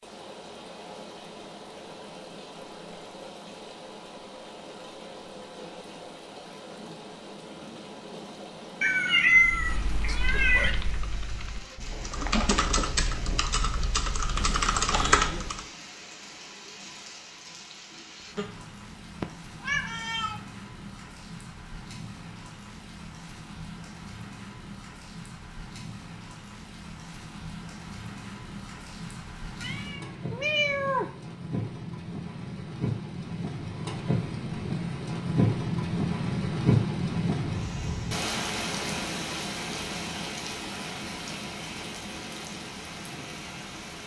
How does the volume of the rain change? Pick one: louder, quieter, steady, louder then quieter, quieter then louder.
louder.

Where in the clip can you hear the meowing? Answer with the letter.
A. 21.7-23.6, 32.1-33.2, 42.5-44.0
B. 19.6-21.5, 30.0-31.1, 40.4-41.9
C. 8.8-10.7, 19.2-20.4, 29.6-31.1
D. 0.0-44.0
C.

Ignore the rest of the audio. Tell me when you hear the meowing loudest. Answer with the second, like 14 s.
9 s.